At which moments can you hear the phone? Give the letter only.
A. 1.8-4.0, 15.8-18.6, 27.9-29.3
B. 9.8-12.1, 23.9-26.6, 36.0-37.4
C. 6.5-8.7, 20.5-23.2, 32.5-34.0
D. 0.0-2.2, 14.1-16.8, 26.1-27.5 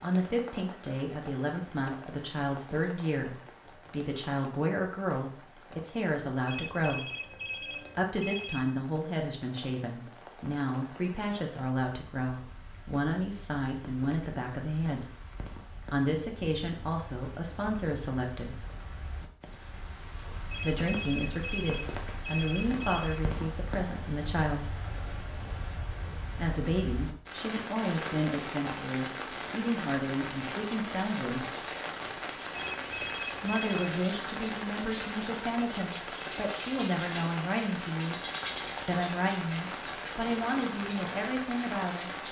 C.